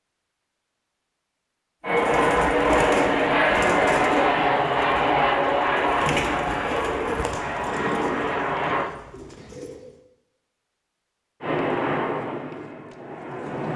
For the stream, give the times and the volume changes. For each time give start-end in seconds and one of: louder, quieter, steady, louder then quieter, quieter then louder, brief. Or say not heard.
not heard.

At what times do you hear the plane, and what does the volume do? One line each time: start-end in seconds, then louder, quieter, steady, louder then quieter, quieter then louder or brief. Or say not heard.
1.8-8.9 quieter
11.4-13.7 brief.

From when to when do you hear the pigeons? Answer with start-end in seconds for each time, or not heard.
1.9-9.9.